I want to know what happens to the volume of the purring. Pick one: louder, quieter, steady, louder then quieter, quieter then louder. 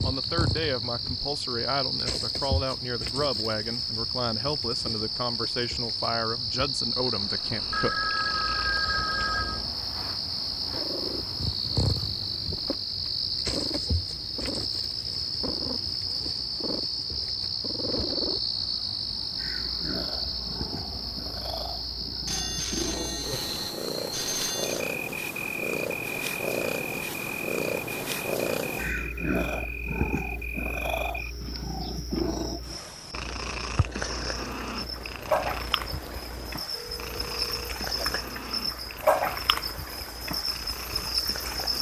louder then quieter.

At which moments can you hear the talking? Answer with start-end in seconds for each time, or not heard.
0.0-8.1.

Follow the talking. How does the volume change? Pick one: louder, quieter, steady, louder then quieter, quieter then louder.
steady.